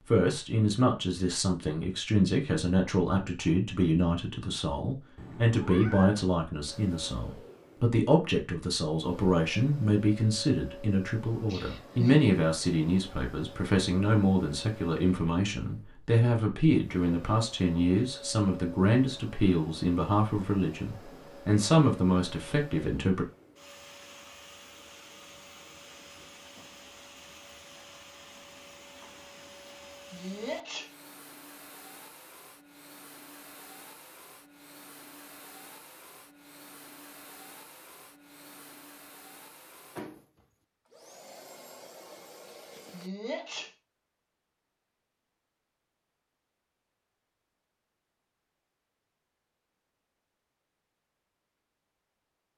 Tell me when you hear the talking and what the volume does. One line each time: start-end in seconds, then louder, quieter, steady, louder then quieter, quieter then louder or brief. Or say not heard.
0.1-23.2 steady.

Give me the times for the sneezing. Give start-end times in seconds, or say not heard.
11.4-12.2, 29.6-30.9, 42.5-43.7.